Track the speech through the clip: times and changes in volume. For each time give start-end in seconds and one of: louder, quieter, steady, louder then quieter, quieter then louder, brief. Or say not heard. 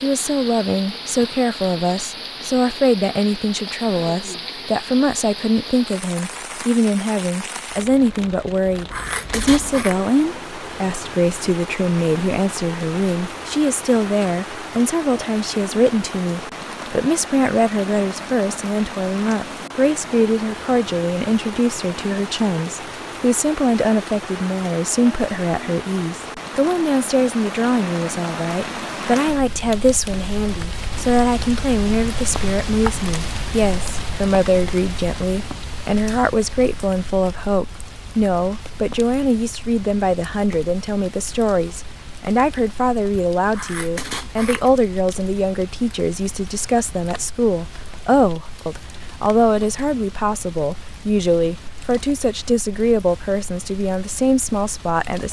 0.0-55.2 steady.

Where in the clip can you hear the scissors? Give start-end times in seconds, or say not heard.
8.9-10.0, 43.5-44.8.